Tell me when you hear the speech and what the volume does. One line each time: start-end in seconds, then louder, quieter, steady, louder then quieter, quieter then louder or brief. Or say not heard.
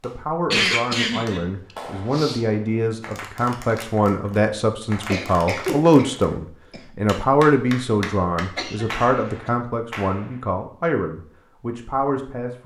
0.0-12.6 louder then quieter.